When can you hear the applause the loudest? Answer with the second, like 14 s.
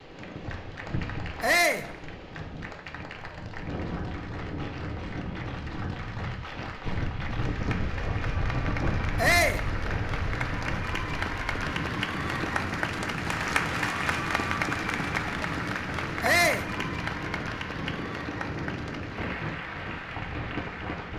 14 s.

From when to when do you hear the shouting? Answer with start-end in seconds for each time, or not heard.
1.4-1.9, 9.2-9.7, 16.2-16.7.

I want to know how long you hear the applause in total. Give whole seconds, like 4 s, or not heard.
21 s.